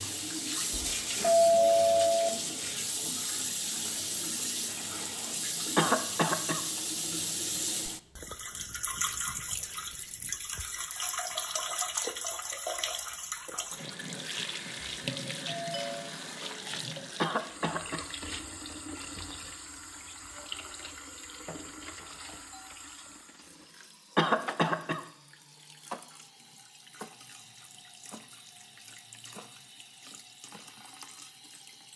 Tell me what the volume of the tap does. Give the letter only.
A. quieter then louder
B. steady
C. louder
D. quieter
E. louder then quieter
D.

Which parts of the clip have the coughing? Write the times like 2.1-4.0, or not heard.
5.8-6.6, 17.2-18.1, 24.1-25.0.